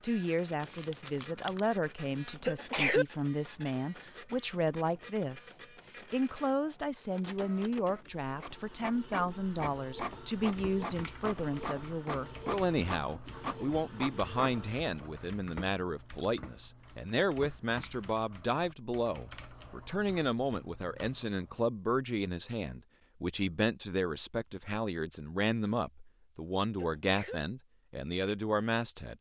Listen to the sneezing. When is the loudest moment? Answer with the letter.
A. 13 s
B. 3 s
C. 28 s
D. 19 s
B.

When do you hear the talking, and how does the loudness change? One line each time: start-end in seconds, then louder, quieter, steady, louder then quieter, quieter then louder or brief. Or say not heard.
0.0-29.1 steady.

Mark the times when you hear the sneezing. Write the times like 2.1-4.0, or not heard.
2.2-3.0, 26.6-27.4.